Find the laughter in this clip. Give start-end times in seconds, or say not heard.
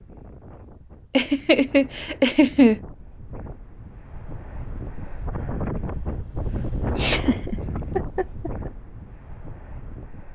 1.1-2.8, 7.0-8.7.